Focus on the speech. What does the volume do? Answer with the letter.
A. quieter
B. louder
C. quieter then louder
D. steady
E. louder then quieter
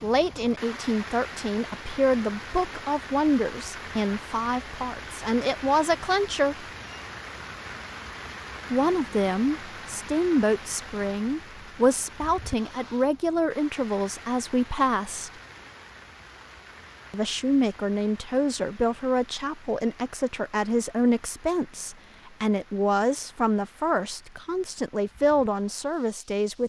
D.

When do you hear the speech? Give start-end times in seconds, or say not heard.
0.0-6.7, 8.7-15.3, 17.1-26.6.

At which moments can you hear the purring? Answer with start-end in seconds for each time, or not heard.
not heard.